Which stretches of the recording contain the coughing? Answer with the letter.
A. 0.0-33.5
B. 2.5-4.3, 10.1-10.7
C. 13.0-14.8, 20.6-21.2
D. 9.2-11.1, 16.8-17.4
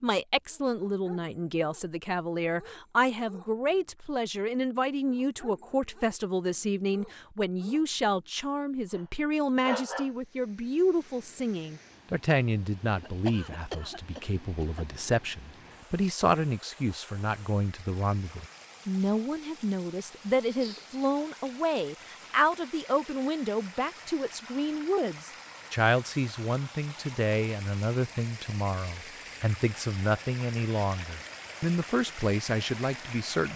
C.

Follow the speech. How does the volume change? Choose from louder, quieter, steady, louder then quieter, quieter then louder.
steady.